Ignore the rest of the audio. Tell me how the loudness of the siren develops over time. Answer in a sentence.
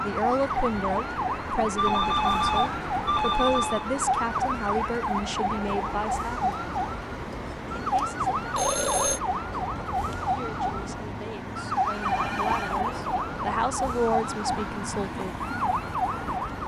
The loudness of the siren stays about the same.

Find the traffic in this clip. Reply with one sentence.
The traffic can be heard from 0.0 to 16.6 s.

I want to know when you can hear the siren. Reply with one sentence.
You can hear the siren from 0.0 to 16.6 s.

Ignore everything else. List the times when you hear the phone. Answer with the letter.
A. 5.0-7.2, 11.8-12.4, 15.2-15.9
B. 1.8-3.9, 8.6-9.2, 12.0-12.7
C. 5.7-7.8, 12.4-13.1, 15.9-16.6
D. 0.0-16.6
B.